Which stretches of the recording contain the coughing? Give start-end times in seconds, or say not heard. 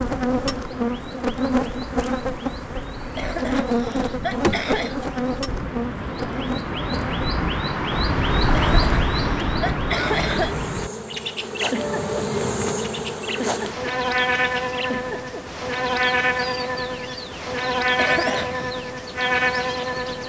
3.1-5.0, 8.5-10.6, 17.9-18.8.